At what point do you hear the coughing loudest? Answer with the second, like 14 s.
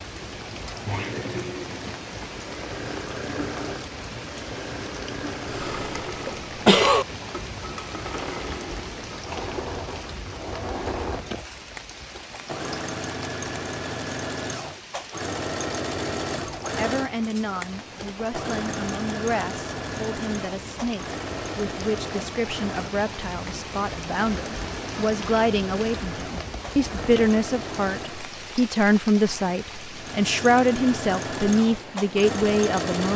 7 s.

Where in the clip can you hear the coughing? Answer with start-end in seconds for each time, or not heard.
5.5-7.0.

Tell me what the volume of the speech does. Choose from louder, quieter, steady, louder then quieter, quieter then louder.
louder.